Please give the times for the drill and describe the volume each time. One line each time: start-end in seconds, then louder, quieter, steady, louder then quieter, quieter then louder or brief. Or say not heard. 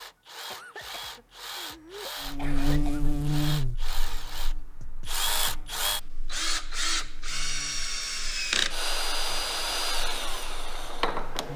0.0-11.5 louder.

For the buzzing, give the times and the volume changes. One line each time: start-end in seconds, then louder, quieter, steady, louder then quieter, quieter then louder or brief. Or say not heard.
2.2-11.5 quieter.